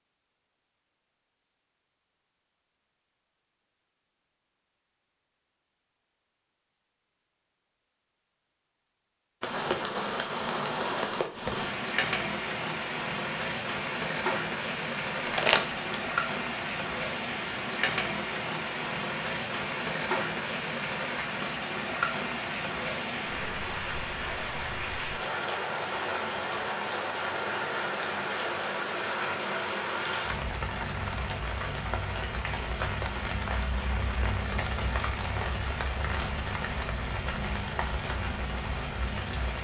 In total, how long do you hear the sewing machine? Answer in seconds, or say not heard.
not heard.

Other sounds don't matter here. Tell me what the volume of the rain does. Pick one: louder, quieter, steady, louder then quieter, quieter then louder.
steady.